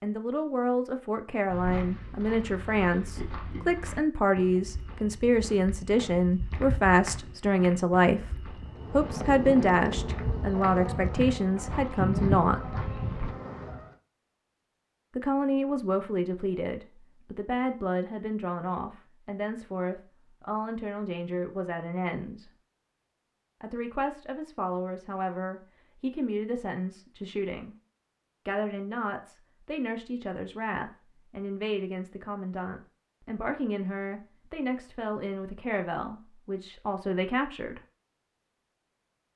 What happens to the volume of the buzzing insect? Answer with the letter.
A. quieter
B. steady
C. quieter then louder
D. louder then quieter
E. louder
D.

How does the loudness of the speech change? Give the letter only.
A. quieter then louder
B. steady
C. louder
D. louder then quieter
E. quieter
E.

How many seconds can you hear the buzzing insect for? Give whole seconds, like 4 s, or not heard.
5 s.